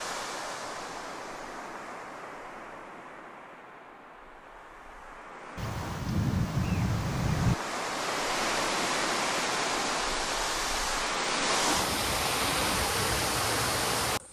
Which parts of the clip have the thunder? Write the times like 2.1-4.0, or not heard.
5.5-7.5.